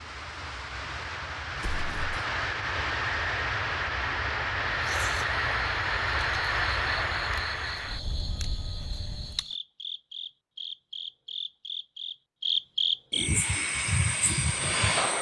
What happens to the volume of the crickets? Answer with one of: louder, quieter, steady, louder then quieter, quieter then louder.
louder.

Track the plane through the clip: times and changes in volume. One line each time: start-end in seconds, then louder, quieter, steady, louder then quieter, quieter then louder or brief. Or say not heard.
0.0-9.4 louder then quieter
13.2-15.1 brief.